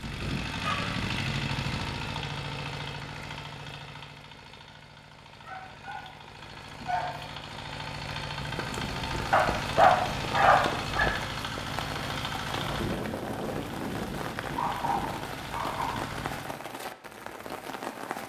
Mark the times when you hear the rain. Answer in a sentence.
You can hear the rain from 8.4 to 18.2 s.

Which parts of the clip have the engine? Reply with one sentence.
You can hear the engine from 0.0 to 16.6 s.